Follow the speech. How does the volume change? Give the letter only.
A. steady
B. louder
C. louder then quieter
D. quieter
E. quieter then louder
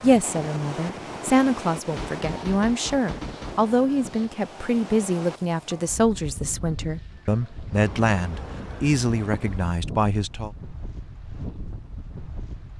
A.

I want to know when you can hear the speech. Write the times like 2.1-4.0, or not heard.
0.0-10.5.